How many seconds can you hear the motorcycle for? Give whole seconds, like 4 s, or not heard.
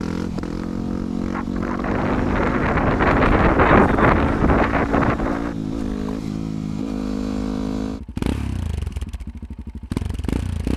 11 s.